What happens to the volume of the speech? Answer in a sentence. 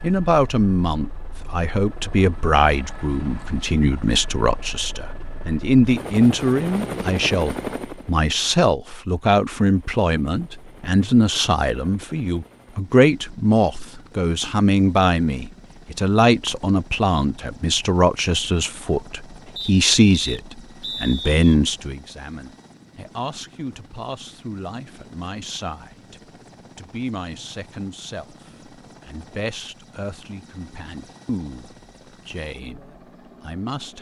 The volume of the speech goes down.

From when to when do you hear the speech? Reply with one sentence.
The speech can be heard from 0.0 to 33.9 s.